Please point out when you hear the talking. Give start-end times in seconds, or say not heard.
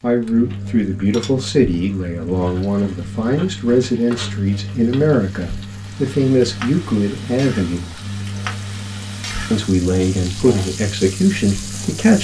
0.0-8.0, 9.5-12.2.